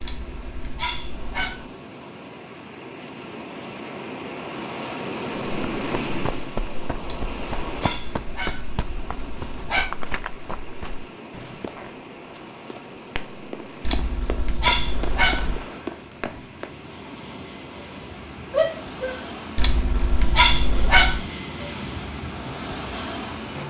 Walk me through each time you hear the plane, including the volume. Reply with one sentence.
You can hear the plane from 14.8 to 23.6 s, getting louder.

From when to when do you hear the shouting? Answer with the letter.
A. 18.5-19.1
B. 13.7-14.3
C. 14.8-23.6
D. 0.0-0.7
A.